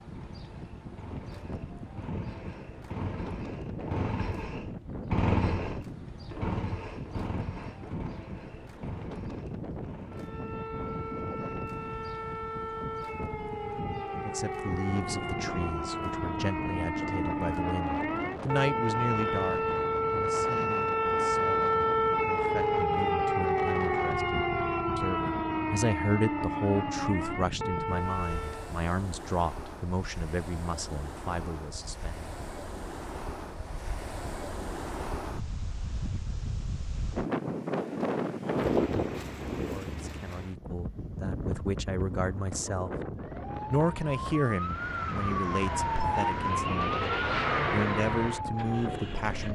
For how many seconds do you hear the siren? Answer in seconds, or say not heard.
25 s.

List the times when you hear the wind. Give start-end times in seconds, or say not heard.
0.0-49.5.